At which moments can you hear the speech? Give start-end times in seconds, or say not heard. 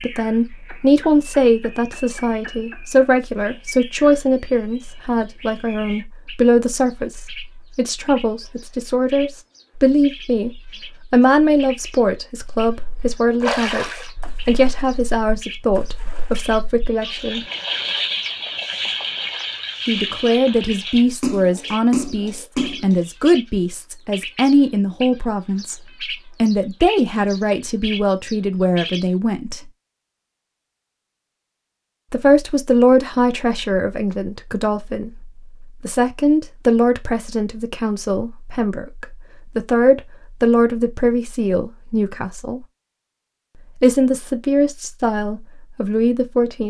0.0-17.4, 19.9-25.8, 26.4-29.6, 32.1-42.6, 43.8-46.6.